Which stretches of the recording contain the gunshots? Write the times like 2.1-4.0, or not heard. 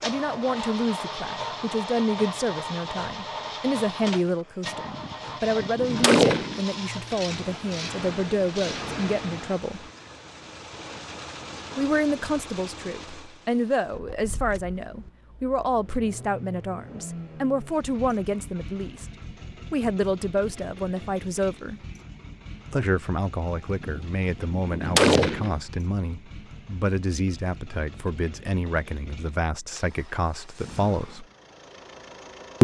4.7-6.6, 23.7-25.6.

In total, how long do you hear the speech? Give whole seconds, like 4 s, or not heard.
28 s.